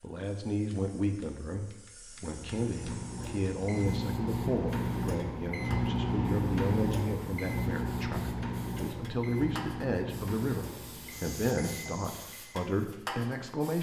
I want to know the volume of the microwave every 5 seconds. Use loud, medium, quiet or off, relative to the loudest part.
loud, loud, medium.